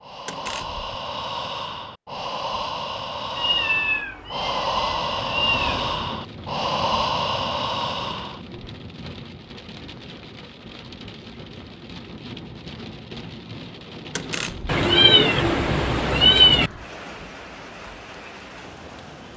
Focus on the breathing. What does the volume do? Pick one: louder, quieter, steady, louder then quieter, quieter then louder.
louder.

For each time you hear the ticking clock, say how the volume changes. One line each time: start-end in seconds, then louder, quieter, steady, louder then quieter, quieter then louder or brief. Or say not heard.
not heard.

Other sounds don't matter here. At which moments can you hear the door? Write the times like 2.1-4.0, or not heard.
0.2-0.8, 14.2-14.8.